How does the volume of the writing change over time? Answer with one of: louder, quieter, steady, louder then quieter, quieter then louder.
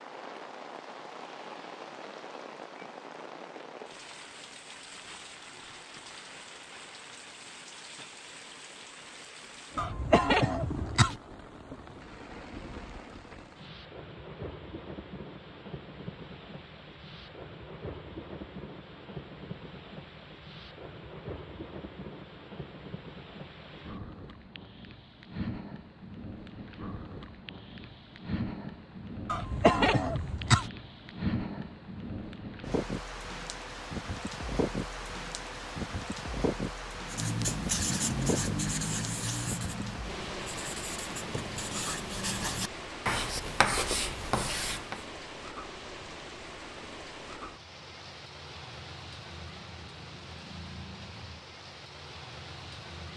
quieter then louder.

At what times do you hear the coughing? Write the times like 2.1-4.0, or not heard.
9.8-11.2, 29.2-30.7.